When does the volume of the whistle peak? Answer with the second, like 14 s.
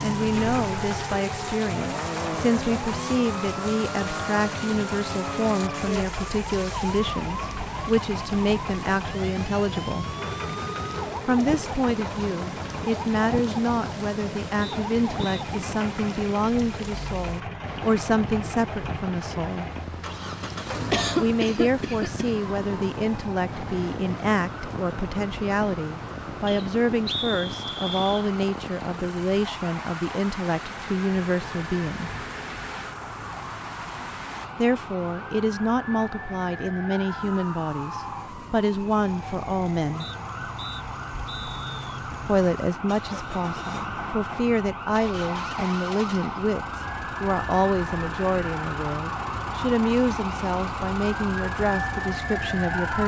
27 s.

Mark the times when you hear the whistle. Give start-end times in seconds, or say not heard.
14.6-15.4, 26.4-28.2, 40.0-42.0.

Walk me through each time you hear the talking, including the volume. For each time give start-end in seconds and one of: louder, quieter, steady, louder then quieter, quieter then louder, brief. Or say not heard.
0.0-10.2 steady
11.2-19.6 steady
21.1-32.1 steady
34.5-40.0 steady
42.2-53.0 steady.